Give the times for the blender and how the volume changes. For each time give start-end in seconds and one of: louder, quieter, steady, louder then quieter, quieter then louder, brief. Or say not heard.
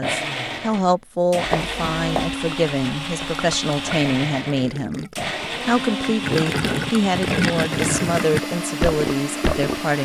0.0-10.0 steady.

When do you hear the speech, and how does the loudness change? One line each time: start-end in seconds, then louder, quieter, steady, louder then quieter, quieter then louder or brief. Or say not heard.
0.0-10.0 steady.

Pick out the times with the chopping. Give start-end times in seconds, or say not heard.
1.4-2.4.